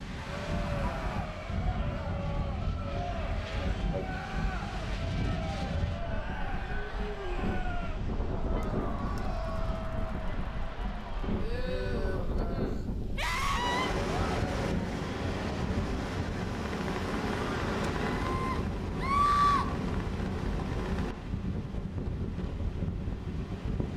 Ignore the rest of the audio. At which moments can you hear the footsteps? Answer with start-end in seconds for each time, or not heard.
not heard.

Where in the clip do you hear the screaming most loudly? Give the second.
19 s.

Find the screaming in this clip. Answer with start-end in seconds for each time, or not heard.
0.2-1.2, 13.2-13.9, 18.2-19.6.